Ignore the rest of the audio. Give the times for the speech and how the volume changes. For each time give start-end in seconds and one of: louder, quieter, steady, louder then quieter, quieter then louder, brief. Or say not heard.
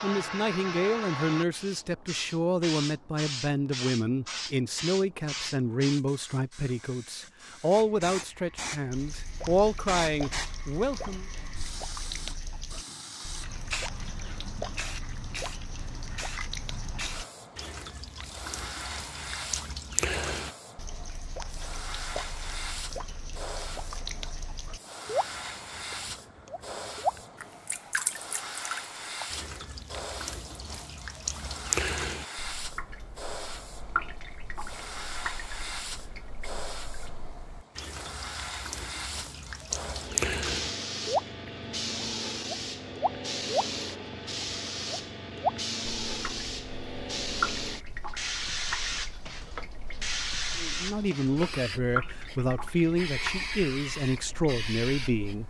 0.0-11.2 steady
50.5-55.4 steady.